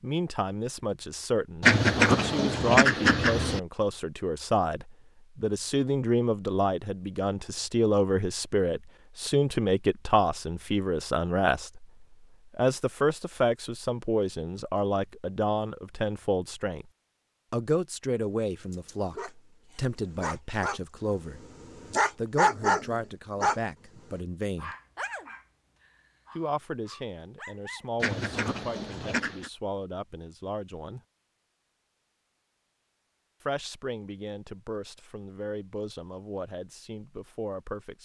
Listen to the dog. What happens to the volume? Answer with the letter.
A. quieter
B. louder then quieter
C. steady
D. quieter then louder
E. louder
B.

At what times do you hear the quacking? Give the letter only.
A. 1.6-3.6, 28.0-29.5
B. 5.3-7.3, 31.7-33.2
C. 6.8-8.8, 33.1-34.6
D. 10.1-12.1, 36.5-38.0
A.